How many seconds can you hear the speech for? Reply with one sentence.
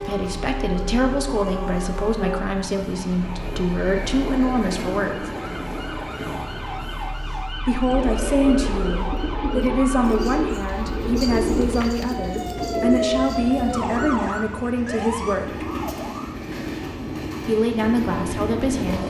The speech can be heard for 15 seconds in total.